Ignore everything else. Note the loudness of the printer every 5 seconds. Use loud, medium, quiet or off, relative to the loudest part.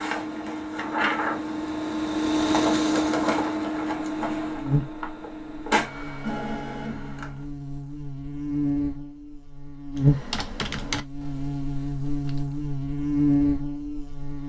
loud, medium, off.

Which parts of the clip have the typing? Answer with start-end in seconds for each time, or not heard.
9.9-12.5.